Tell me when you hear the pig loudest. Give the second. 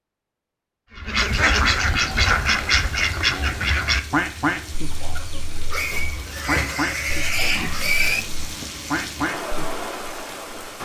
8 s.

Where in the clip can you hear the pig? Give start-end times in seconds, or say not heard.
2.1-3.8, 5.7-8.2.